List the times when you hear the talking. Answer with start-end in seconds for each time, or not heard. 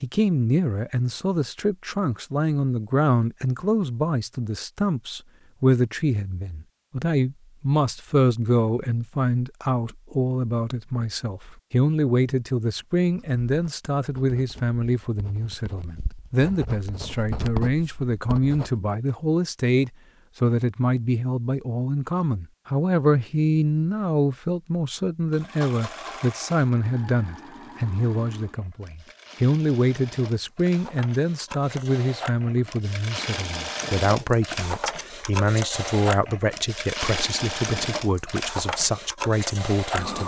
0.0-40.2.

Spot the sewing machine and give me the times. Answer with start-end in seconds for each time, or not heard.
25.3-40.2.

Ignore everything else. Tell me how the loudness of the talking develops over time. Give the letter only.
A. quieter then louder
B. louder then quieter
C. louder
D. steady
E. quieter
D.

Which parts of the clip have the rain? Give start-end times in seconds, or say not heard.
not heard.